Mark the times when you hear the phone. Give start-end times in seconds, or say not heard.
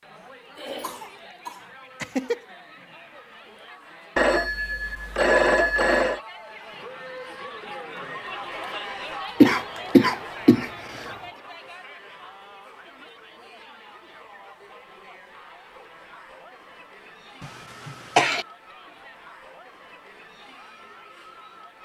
4.2-6.2.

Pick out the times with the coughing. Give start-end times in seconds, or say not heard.
0.6-2.4, 9.4-10.7, 17.9-18.4.